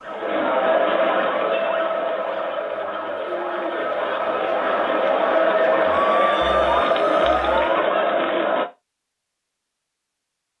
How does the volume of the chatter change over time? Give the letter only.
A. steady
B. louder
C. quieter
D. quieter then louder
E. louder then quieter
D.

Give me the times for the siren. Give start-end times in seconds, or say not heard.
0.0-7.9.